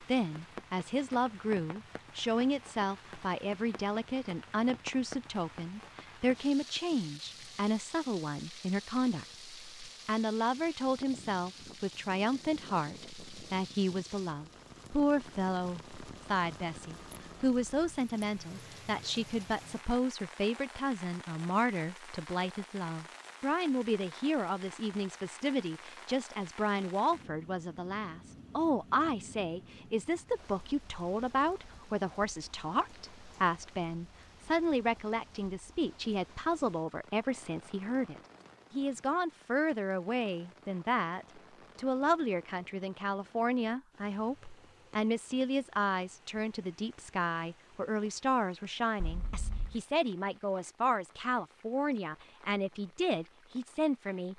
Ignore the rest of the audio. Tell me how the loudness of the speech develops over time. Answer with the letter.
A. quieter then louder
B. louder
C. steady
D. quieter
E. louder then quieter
C.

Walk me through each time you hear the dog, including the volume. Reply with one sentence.
The dog can't be heard in this clip.